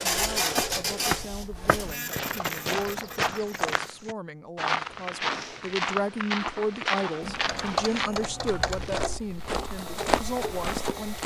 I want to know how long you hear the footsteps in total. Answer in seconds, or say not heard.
11 s.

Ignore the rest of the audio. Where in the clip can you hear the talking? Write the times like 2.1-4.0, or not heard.
0.0-11.2.